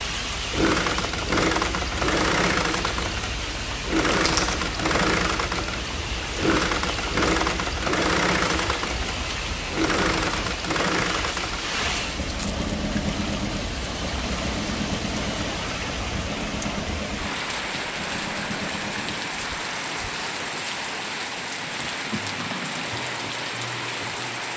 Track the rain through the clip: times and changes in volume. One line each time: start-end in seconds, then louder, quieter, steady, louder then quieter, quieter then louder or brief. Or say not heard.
0.0-24.5 steady.